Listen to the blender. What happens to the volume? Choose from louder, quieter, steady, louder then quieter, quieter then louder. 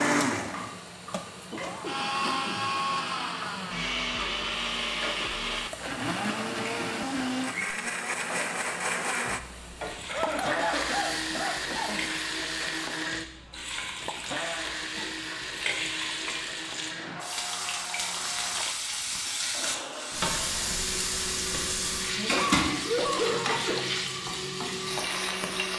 quieter.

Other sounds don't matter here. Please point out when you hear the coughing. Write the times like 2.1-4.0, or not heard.
1.2-2.7, 10.1-12.1, 22.1-23.9.